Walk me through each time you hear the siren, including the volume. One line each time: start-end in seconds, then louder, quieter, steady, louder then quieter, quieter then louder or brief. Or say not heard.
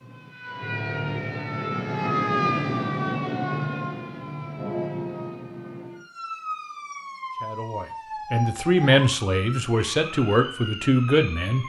0.0-11.6 quieter.